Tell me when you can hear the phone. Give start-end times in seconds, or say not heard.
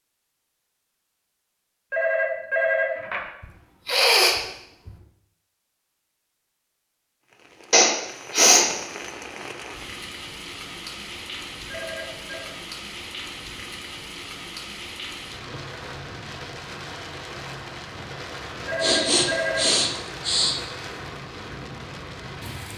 1.9-3.2, 11.7-12.5, 18.6-19.6.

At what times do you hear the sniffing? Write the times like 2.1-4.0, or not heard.
3.4-4.9, 7.7-8.7, 18.8-20.6.